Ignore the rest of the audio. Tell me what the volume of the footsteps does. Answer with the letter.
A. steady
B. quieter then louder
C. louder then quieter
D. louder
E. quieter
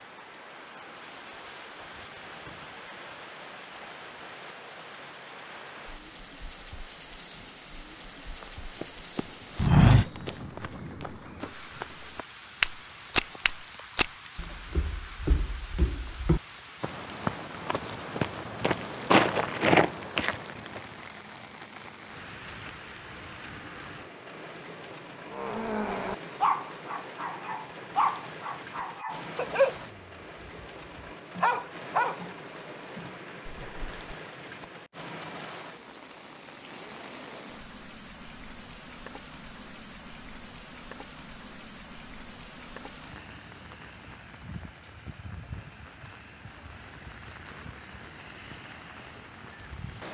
B.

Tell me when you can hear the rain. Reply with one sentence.
You can hear the rain from 0.0 to 50.0 s.